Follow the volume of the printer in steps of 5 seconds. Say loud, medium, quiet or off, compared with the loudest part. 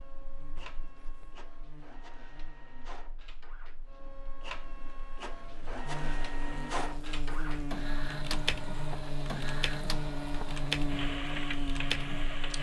medium, loud, loud.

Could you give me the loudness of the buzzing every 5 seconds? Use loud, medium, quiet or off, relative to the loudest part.
quiet, loud, loud.